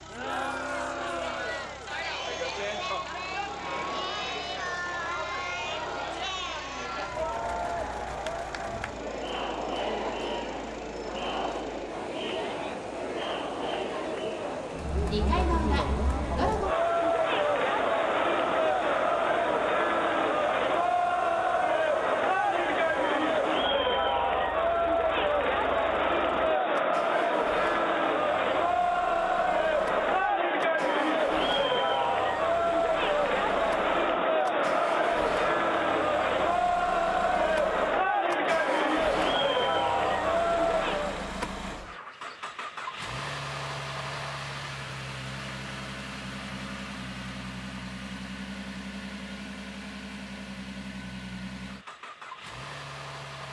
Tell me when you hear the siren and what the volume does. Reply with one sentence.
The siren can't be heard in this clip.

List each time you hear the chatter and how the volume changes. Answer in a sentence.
The chatter can be heard from 0.0 to 41.3 s, getting louder.